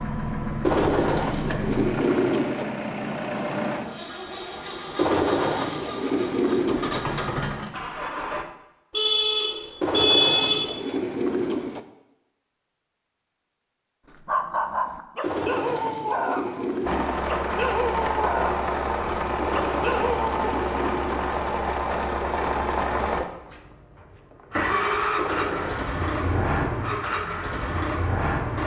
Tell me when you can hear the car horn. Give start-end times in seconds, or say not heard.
8.9-10.8.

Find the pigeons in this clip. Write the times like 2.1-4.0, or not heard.
0.6-2.6, 5.0-7.0, 9.8-11.8, 15.2-17.2, 19.4-21.4, 25.1-26.9.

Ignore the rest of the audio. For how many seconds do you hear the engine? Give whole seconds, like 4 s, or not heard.
20 s.